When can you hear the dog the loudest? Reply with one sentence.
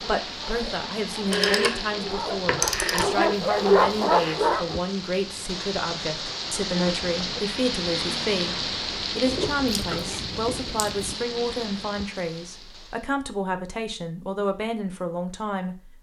The volume of the dog peaks at 4 seconds.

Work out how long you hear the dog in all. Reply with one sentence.
You can hear the dog for 5 seconds altogether.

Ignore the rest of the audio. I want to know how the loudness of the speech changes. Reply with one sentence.
The volume of the speech stays about the same.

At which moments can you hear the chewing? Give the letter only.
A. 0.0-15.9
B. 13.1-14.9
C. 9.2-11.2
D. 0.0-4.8
C.